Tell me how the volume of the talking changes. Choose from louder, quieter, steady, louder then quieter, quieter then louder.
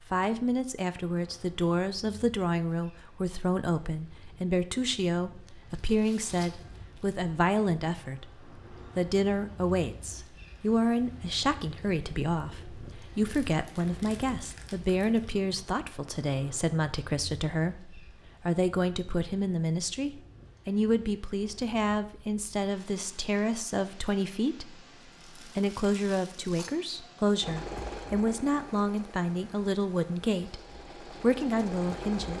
steady.